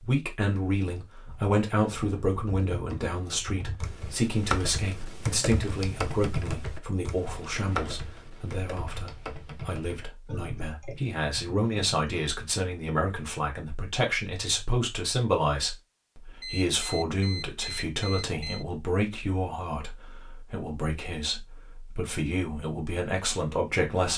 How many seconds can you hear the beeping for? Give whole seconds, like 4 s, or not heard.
2 s.